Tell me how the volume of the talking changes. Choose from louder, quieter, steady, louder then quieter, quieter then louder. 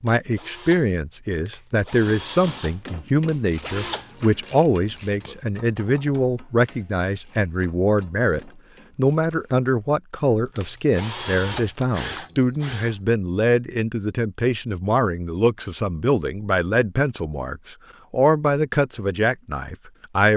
steady.